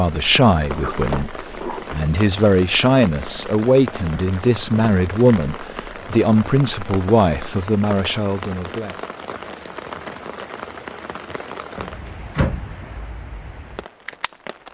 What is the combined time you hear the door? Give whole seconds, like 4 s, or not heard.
2 s.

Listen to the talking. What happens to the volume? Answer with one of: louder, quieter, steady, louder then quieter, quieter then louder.
steady.